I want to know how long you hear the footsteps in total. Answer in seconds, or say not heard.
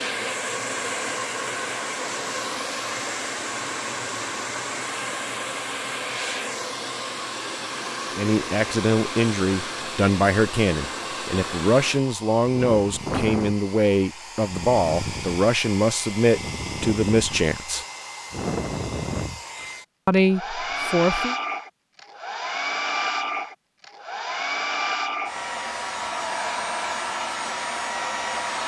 not heard.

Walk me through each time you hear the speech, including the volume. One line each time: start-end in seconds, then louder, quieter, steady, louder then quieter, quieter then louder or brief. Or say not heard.
8.2-17.9 steady
20.1-21.4 brief.